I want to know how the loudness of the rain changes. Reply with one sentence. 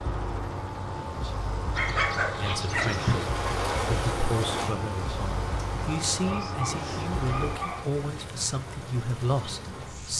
The volume of the rain goes down.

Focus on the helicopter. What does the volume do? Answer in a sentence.
The volume of the helicopter goes down.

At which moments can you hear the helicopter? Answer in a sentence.
You can hear the helicopter from 0.0 to 10.1 s.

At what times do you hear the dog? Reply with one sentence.
You can hear the dog from 1.8 to 3.2 s and from 6.2 to 7.9 s.